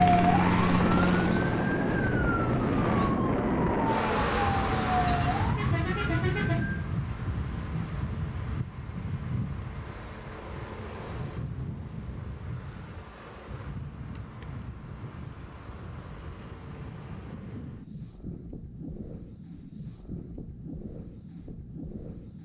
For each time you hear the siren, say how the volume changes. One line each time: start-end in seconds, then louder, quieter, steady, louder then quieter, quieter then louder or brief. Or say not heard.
0.0-6.9 steady.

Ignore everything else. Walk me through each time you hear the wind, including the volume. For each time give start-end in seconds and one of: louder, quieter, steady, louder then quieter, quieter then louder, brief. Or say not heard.
0.0-22.4 quieter.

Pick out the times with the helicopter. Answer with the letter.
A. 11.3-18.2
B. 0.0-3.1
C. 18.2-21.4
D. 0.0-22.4
B.